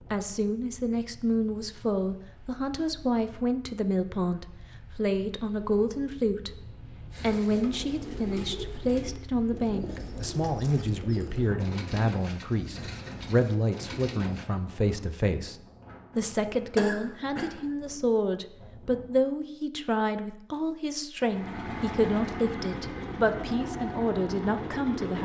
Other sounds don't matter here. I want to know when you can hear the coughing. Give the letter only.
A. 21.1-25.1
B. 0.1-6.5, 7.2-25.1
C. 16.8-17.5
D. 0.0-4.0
C.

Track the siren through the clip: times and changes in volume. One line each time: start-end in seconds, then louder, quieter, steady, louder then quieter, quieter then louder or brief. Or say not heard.
not heard.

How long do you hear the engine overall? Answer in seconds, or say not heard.
4 s.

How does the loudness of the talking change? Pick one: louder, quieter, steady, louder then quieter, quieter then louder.
steady.